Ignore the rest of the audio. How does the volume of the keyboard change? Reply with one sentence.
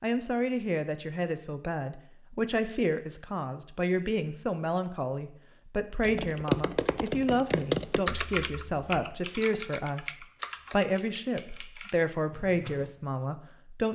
The volume of the keyboard goes down.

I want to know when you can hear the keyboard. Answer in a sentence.
You can hear the keyboard from 6.0 to 12.9 s.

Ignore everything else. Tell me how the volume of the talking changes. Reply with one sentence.
The loudness of the talking stays about the same.